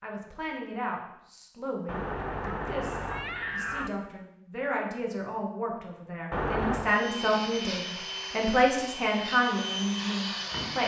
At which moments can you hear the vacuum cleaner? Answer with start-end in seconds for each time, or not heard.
6.8-10.8.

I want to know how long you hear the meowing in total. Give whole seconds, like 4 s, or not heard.
3 s.